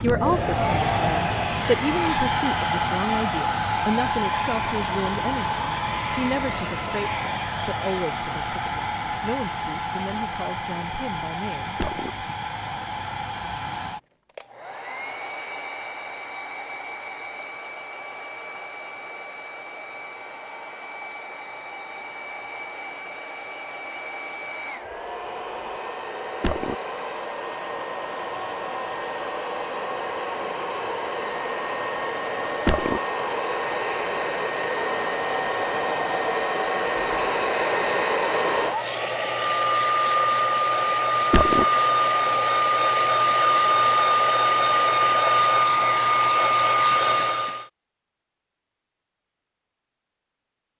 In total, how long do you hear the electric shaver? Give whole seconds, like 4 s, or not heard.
not heard.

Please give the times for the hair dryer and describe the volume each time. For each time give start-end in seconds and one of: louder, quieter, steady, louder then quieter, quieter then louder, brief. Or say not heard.
0.0-47.6 quieter then louder.